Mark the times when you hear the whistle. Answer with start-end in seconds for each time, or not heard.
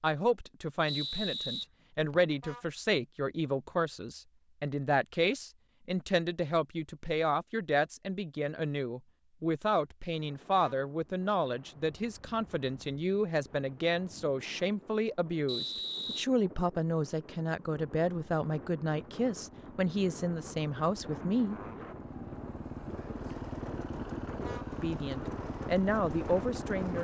0.8-2.4, 15.4-16.2.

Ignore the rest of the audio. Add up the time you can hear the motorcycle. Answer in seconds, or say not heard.
9 s.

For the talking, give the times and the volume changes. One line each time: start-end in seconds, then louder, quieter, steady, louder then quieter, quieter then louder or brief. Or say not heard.
0.0-21.6 steady
24.8-26.9 brief.